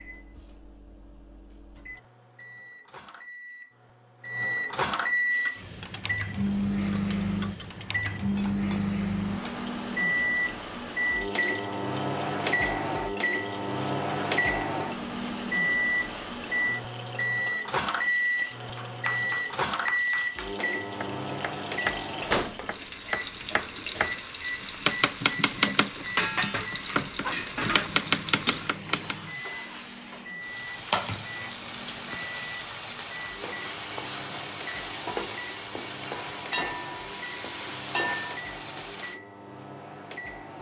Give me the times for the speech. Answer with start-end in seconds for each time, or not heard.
not heard.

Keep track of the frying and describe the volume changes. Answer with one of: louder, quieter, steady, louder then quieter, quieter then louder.
louder.